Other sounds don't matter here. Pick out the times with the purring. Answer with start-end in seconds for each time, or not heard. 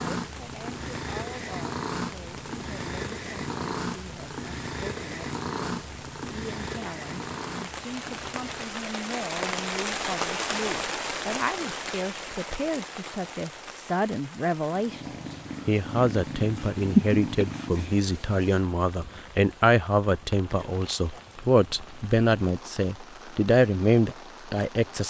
0.0-8.8, 14.7-18.1.